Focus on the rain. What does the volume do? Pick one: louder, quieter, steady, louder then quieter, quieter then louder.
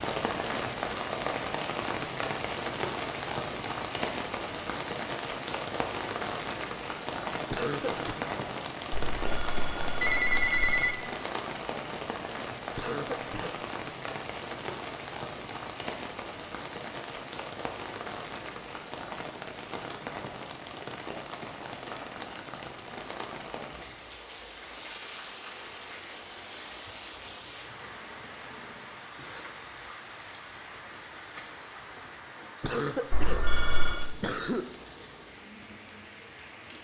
quieter.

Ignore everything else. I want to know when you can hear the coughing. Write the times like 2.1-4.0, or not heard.
7.5-8.2, 12.8-13.6, 32.6-34.6.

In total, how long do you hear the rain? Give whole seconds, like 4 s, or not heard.
37 s.